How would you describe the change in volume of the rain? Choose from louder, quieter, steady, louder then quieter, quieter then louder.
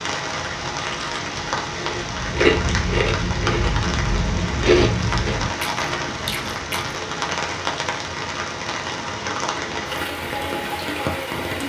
steady.